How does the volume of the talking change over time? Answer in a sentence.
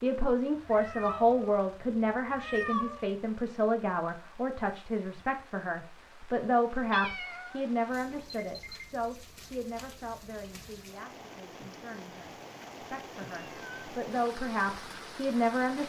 The loudness of the talking goes down, then up.